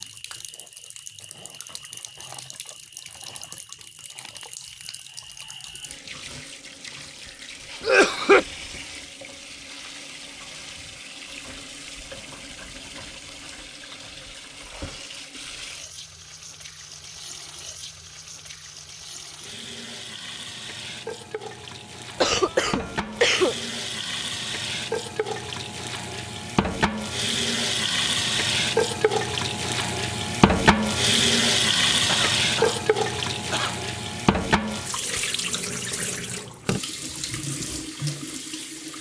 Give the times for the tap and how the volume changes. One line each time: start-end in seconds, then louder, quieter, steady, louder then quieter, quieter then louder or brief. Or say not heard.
0.0-38.9 louder.